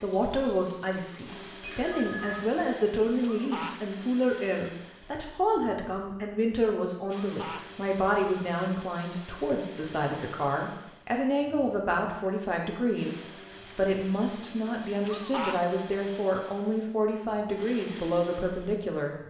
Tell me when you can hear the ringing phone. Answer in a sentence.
You can hear the ringing phone from 1.8 to 2.5 s.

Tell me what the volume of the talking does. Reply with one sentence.
The loudness of the talking stays about the same.